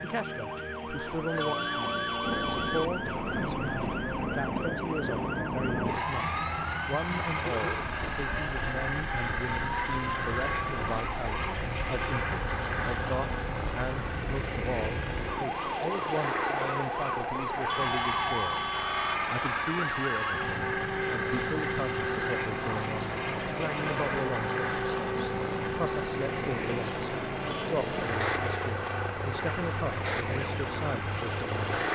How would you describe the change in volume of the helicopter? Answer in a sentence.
The volume of the helicopter stays about the same.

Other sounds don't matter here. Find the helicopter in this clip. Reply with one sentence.
The helicopter can be heard from 2.2 to 31.9 s.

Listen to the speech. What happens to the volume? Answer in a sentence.
The volume of the speech stays about the same.